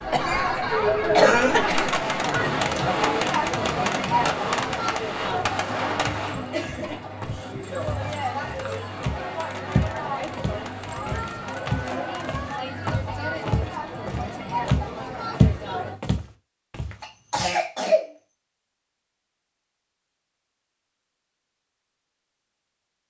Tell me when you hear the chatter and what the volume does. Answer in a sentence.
You can hear the chatter from 0.0 to 16.0 s, getting quieter.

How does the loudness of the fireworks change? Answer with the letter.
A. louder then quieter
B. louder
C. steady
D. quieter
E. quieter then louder
D.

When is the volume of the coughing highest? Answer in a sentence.
The loudest moment of the coughing is at 1 second.